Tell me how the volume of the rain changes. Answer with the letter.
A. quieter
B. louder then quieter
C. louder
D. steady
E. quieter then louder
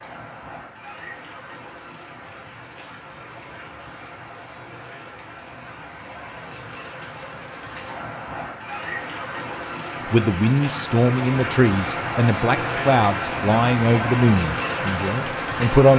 C.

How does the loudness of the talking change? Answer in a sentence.
The loudness of the talking goes down.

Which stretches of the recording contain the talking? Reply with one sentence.
The talking can be heard from 10.1 to 15.9 s.